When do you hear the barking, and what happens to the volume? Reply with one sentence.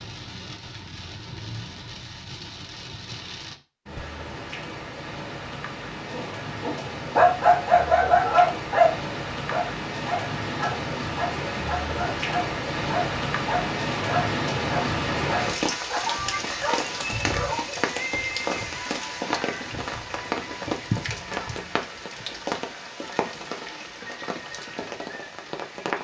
The barking can be heard from 6.1 to 17.6 s, getting quieter.